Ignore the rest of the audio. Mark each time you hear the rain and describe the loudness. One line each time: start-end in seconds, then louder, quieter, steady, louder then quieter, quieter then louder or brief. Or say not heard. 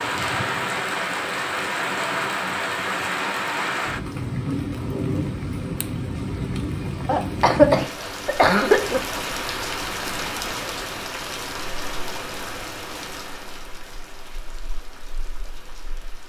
0.0-16.2 quieter.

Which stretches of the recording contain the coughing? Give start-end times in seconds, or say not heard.
7.0-9.0.